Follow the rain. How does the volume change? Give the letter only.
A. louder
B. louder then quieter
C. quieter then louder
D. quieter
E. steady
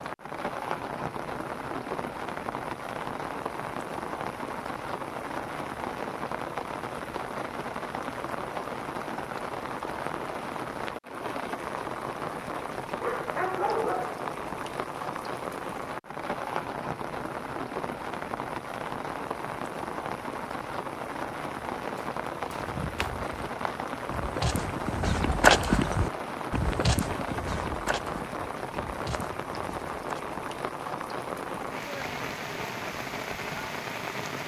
E.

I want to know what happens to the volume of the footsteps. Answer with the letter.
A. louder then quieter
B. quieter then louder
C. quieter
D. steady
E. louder
A.